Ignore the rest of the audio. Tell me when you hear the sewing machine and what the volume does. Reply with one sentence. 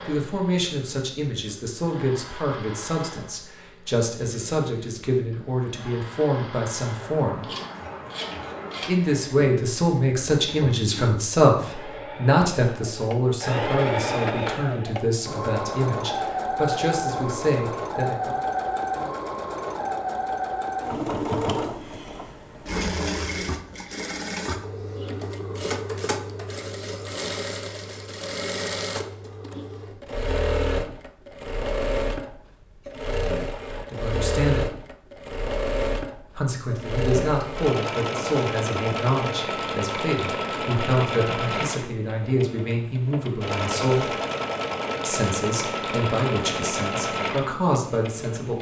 You can hear the sewing machine from 0.0 to 48.5 s, getting louder.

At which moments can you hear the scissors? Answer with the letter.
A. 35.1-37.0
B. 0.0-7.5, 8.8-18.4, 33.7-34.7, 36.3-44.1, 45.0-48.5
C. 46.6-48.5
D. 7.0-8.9
D.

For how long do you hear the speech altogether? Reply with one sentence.
The speech can be heard for 29 seconds in total.